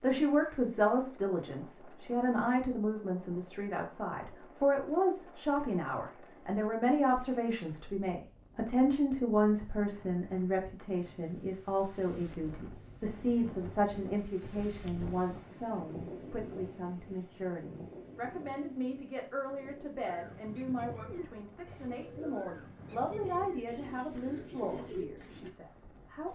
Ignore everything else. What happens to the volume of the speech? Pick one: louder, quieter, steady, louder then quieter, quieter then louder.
quieter.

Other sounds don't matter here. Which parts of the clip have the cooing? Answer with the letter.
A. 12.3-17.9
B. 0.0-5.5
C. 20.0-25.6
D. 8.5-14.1
C.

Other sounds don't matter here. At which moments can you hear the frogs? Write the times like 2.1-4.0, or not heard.
not heard.